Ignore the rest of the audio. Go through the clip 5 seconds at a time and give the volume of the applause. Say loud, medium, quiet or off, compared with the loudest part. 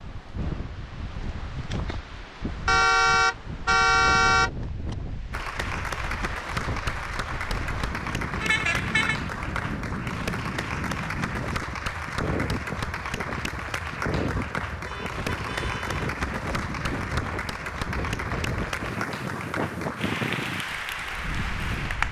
off, loud, loud, loud, loud.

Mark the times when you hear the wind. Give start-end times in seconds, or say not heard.
0.0-22.0.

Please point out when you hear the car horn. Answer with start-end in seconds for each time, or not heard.
2.6-5.0, 8.4-9.2, 14.8-16.0.